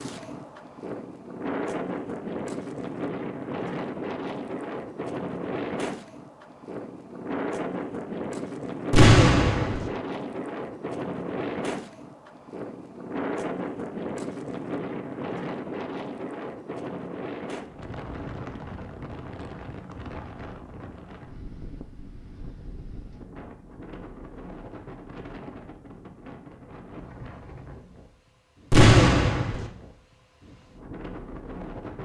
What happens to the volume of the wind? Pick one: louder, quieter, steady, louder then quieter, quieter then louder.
quieter.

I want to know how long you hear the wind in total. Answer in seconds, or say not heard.
32 s.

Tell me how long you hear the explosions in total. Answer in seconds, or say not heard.
2 s.